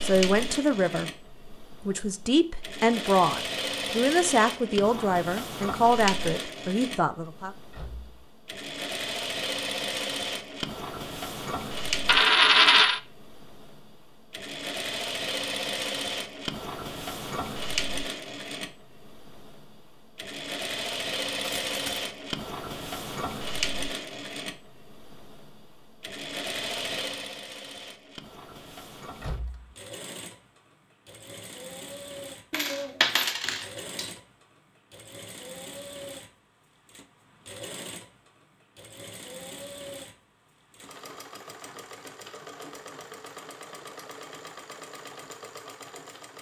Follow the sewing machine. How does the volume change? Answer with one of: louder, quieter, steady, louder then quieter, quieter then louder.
quieter.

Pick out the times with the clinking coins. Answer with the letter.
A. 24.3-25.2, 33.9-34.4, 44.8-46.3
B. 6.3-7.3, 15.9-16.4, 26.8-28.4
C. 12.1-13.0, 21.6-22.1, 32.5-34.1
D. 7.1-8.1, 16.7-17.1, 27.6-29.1
C.